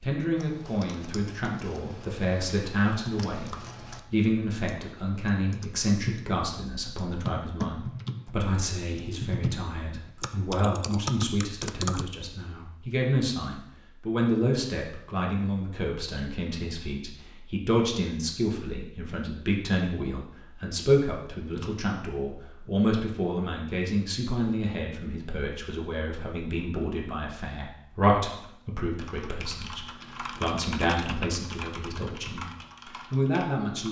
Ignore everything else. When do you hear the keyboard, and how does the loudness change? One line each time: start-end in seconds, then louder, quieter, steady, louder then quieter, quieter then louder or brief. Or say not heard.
0.3-12.1 louder
28.3-33.8 louder then quieter.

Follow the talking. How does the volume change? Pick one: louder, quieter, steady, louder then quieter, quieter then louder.
steady.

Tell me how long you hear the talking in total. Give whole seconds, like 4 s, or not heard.
34 s.